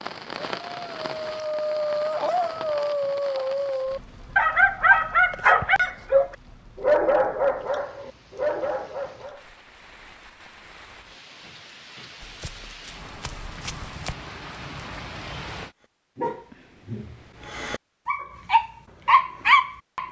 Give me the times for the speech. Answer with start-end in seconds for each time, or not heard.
not heard.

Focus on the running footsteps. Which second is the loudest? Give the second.
14 s.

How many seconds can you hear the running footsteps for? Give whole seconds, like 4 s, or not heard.
2 s.